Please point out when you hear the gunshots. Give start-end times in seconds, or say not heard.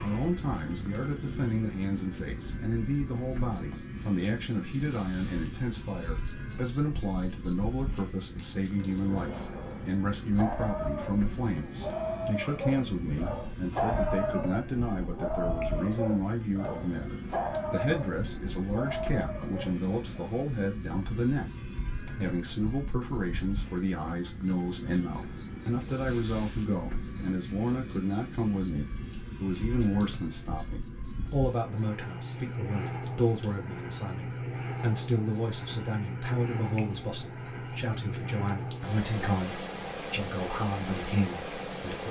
not heard.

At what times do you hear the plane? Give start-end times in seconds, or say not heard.
0.0-42.0.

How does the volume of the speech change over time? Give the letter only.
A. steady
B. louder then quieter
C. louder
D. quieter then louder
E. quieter
A.